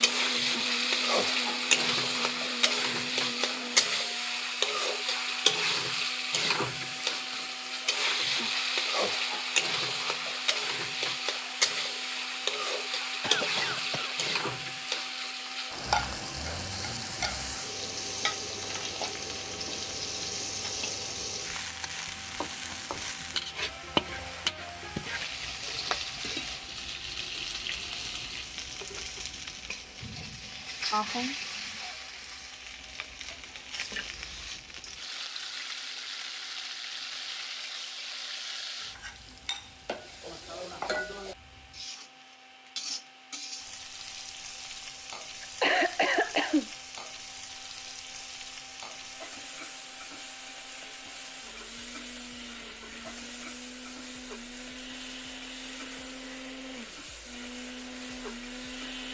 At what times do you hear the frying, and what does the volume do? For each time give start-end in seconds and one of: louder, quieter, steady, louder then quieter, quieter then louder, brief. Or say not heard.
0.0-59.0 quieter.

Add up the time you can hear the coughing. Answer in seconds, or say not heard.
4 s.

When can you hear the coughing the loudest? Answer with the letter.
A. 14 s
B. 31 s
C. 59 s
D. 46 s
D.